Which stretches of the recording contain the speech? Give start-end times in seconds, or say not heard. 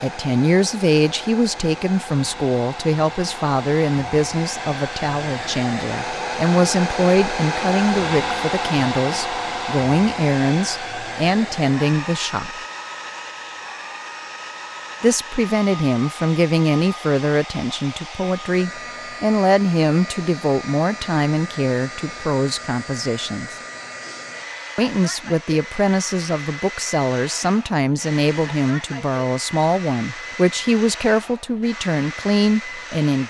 0.0-12.6, 15.0-23.6, 24.8-33.2.